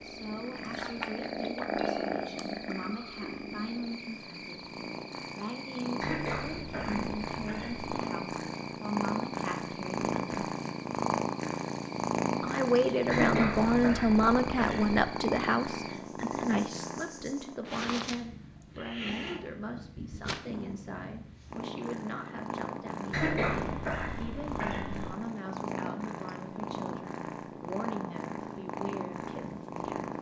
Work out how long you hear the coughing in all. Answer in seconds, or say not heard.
6 s.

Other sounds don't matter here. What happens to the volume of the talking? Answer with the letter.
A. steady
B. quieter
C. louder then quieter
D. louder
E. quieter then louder
C.